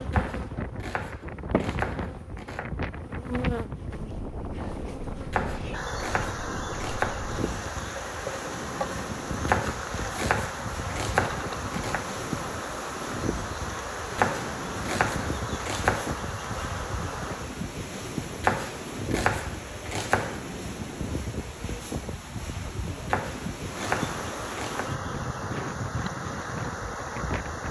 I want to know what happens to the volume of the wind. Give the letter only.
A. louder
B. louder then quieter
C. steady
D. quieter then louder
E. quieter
C.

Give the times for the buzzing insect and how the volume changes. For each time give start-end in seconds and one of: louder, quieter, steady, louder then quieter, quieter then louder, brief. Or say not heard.
0.0-17.6 steady
23.6-27.6 steady.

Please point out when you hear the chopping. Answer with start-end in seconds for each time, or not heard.
0.1-2.7, 5.3-7.3, 9.4-12.1, 14.2-16.4, 18.4-20.4, 23.1-24.9.